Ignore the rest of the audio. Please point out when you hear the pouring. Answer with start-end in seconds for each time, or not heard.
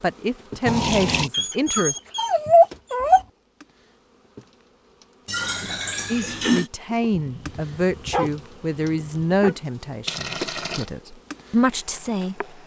0.7-1.3, 5.2-6.7, 10.1-10.8.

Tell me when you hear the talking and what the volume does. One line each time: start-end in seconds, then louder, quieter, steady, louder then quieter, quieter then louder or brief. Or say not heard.
0.0-1.9 brief
6.1-12.6 quieter then louder.